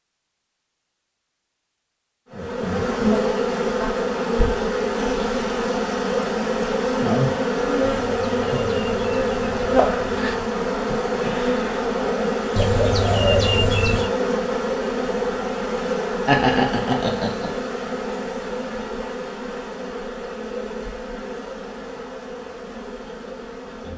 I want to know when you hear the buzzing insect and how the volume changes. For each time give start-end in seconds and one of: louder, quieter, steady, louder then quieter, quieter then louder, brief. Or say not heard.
2.3-23.9 quieter.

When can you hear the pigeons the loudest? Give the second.
13 s.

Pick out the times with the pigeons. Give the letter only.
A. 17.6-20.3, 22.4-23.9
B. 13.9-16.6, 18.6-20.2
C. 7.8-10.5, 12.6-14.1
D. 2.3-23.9
C.